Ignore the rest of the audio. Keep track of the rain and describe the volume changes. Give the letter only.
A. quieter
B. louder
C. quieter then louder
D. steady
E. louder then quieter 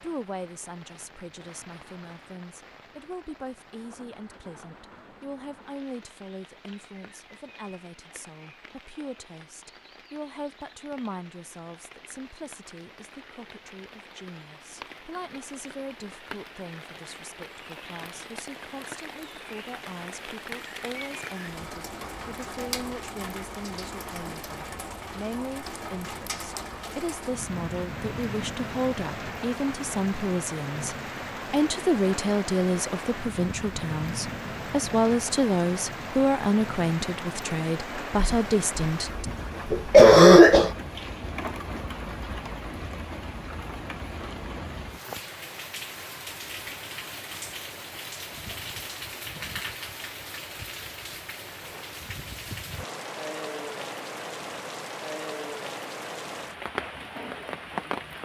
B.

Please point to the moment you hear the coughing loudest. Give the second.
40 s.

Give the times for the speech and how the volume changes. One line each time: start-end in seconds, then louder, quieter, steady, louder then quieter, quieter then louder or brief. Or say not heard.
0.0-39.2 louder.